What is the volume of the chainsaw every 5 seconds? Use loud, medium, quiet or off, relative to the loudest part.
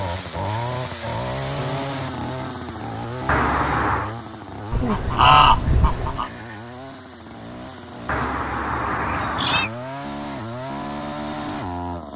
loud, medium, loud.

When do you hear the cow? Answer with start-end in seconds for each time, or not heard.
not heard.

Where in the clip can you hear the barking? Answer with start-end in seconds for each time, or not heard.
not heard.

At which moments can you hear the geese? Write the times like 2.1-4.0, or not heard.
4.7-6.3.